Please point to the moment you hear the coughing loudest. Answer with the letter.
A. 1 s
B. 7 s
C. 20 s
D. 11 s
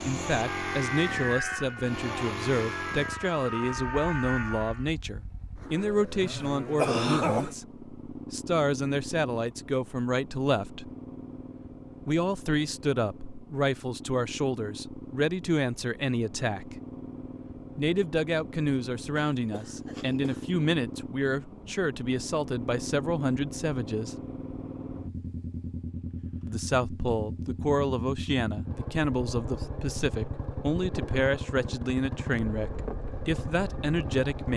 B.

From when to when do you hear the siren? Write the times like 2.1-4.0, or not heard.
0.0-4.8.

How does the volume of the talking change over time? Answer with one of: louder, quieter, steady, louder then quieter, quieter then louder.
steady.